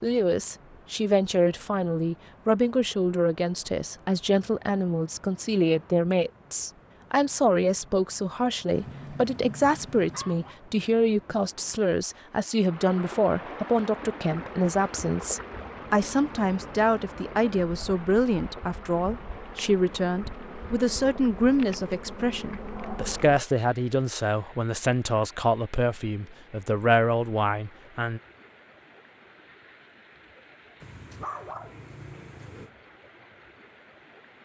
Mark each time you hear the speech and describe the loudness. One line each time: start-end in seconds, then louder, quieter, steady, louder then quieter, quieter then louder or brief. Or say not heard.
0.0-28.2 steady.